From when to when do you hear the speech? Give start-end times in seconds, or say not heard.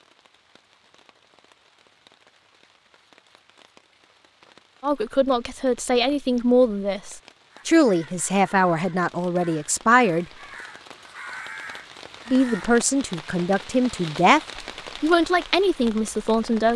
4.8-10.2, 12.3-14.4, 15.0-16.7.